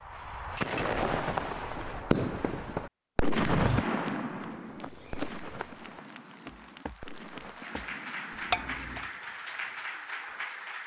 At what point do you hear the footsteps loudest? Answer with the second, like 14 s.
4 s.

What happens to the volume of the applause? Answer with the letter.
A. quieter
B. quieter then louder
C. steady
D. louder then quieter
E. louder
E.